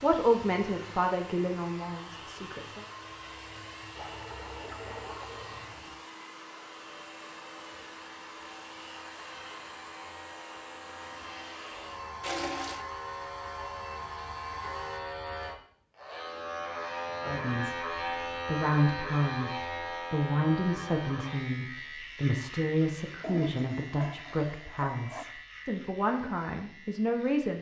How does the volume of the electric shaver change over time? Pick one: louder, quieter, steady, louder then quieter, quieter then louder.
louder then quieter.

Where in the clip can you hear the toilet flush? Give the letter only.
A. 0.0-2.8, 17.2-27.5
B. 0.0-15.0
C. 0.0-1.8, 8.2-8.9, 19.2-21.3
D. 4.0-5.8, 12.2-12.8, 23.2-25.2
D.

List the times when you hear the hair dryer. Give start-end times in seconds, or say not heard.
0.0-15.0.